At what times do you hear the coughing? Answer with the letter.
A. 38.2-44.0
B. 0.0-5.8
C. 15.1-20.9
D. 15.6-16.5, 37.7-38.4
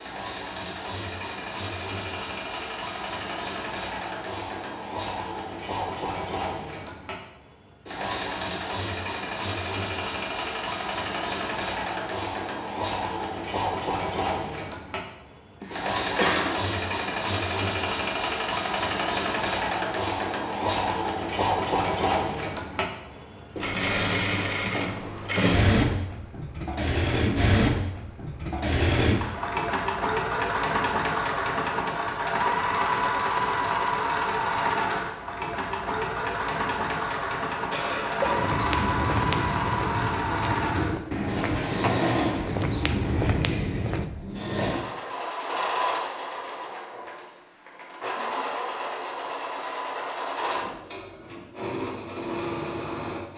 D.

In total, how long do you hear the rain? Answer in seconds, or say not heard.
not heard.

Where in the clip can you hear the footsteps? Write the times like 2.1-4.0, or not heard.
38.2-44.0.